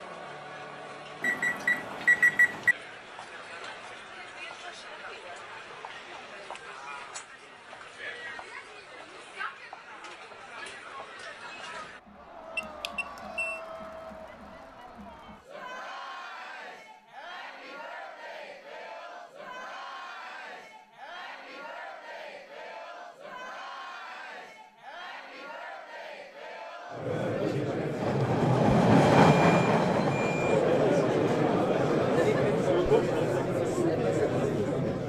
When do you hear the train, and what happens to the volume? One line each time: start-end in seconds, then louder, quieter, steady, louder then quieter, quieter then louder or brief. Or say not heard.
28.0-32.5 quieter.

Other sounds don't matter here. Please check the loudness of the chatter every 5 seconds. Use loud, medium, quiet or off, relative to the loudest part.
quiet, quiet, quiet, quiet, quiet, medium, loud.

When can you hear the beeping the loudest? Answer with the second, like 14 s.
2 s.